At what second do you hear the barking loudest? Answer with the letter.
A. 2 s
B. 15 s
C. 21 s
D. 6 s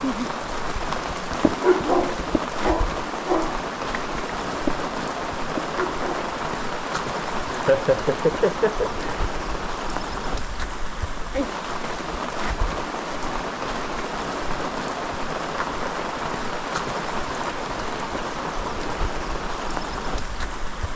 A.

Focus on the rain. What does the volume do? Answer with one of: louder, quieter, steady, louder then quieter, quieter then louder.
steady.